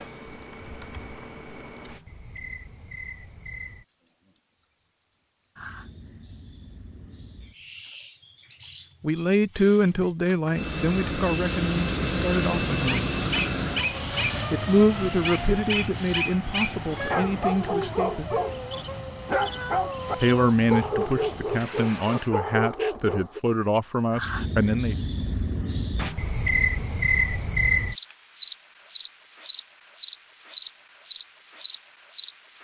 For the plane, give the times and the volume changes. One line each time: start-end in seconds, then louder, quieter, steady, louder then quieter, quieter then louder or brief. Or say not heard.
10.5-22.3 quieter.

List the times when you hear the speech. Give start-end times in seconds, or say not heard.
9.0-13.2, 14.5-18.3, 20.2-24.9.